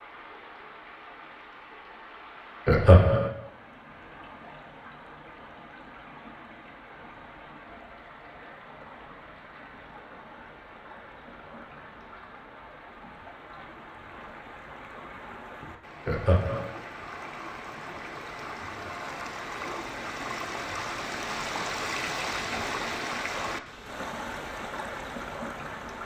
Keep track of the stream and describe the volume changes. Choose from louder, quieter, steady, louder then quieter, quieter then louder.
louder.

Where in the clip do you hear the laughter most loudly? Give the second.
3 s.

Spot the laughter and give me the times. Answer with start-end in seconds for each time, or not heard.
2.6-3.3, 16.1-16.7.